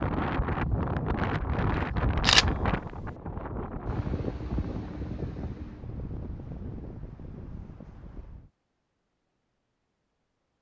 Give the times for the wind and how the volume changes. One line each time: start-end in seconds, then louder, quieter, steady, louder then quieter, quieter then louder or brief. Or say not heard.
0.0-8.5 quieter.